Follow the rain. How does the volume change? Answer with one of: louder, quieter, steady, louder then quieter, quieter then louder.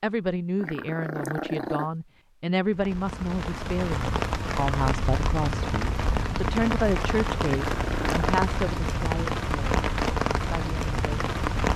steady.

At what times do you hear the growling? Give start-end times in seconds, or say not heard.
0.6-1.9, 7.5-8.4.